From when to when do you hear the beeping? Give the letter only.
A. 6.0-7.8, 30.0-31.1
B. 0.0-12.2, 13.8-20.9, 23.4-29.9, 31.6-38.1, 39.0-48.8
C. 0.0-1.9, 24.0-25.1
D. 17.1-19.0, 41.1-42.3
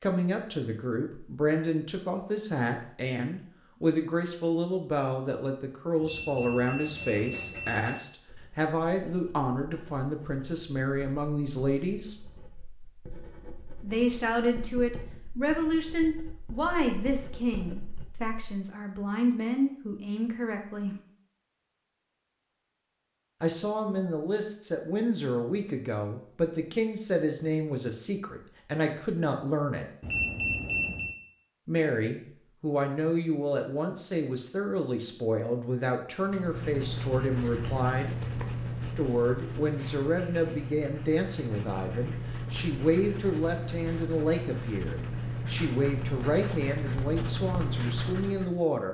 A.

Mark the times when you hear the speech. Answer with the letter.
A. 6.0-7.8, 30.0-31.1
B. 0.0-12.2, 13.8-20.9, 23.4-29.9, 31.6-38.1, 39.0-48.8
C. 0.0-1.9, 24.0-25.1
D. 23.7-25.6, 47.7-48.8
B.